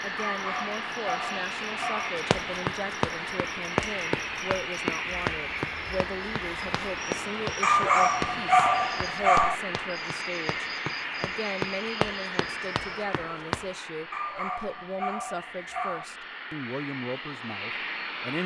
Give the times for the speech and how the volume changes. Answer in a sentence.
You can hear the speech from 0.0 to 18.4 s, at a steady volume.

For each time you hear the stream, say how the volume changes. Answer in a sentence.
You can't hear the stream here.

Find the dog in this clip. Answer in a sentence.
The dog can be heard from 0.1 to 2.1 s, from 7.6 to 9.6 s and from 14.1 to 16.1 s.